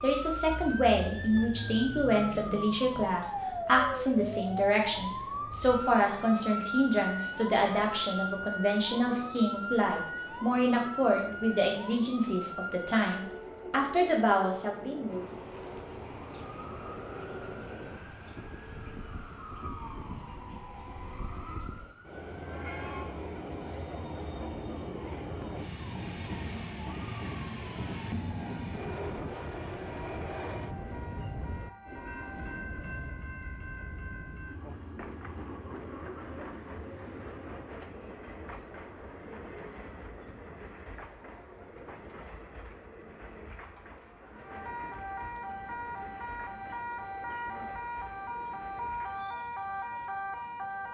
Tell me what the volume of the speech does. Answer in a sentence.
The volume of the speech stays about the same.